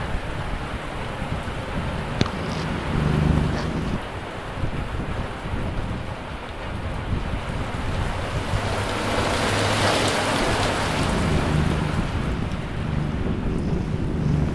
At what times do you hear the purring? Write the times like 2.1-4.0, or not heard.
0.2-4.0, 10.7-14.5.